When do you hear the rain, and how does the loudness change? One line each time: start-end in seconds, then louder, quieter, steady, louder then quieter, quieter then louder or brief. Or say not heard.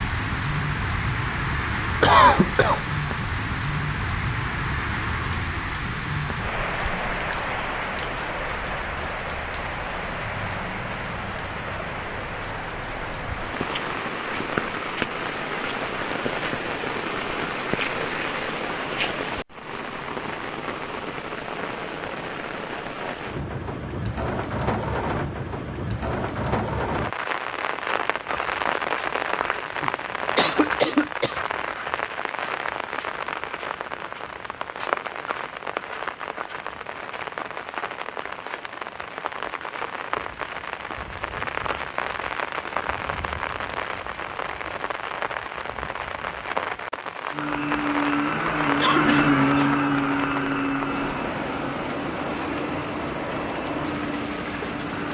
0.0-55.0 steady.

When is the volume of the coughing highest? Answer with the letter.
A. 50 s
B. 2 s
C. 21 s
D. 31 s
B.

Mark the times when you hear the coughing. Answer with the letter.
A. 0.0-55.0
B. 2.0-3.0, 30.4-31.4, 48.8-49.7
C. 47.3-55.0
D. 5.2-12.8
B.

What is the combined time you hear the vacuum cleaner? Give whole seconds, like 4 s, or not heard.
8 s.